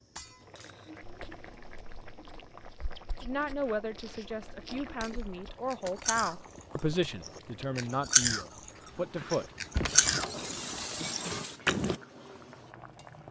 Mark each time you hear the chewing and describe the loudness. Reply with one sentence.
The chewing can be heard from 1.0 to 8.7 s, getting louder; and briefly from 9.3 to 12.0 s.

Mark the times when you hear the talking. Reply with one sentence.
The talking can be heard from 3.2 to 9.5 s.